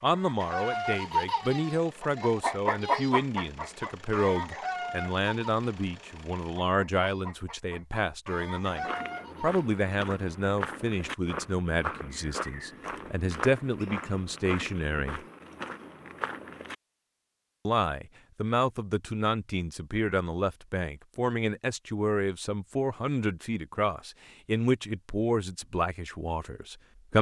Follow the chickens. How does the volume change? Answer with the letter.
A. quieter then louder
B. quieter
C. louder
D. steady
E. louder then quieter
A.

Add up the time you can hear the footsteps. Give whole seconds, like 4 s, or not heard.
8 s.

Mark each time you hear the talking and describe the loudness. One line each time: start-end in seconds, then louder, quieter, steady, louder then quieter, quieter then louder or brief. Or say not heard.
0.0-15.2 steady
17.6-27.1 steady.